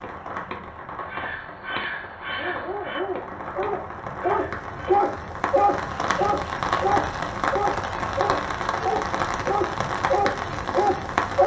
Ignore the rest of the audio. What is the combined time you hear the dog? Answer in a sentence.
You can hear the dog for 9 seconds altogether.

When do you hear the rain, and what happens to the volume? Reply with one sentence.
You can hear the rain from 0.0 to 11.4 s, getting louder.